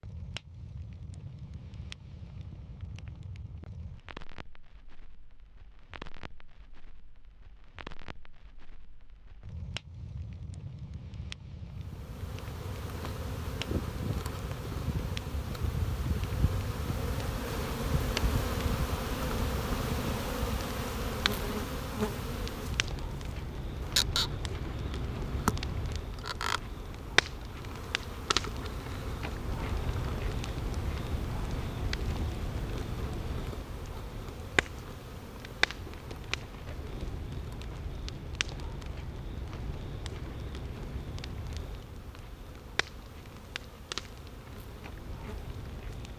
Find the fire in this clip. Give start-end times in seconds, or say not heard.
0.0-46.1.